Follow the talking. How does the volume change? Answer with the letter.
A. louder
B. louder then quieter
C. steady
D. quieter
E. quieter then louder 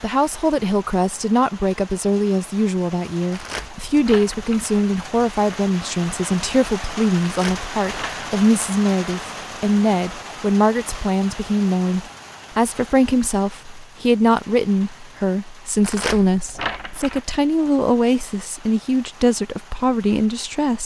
C.